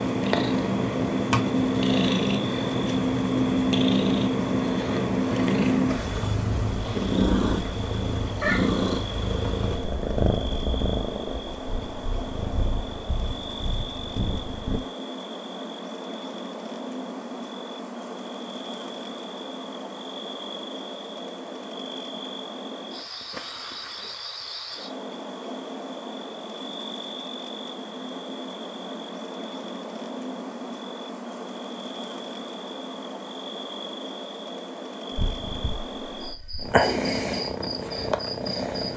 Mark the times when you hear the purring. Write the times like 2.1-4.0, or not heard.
0.0-14.8, 35.1-38.9.